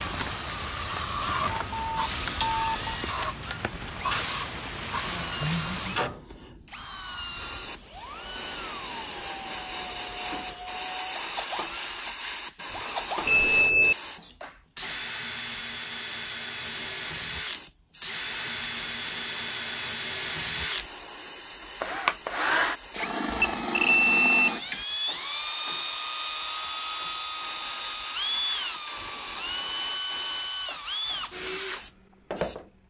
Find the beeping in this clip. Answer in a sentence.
The beeping can be heard from 1.6 to 3.0 s, from 13.2 to 13.9 s and from 23.3 to 24.9 s.